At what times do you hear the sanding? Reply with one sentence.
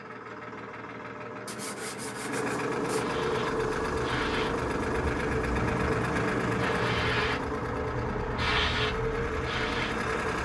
You can hear the sanding from 1.4 to 3.1 s and from 5.7 to 7.0 s.